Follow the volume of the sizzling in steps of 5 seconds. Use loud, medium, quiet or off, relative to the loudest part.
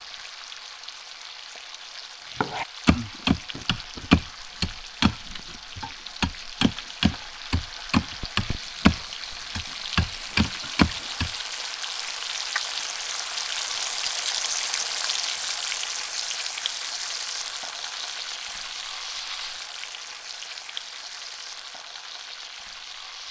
medium, medium, loud, loud, medium.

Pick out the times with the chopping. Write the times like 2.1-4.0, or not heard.
2.4-11.3.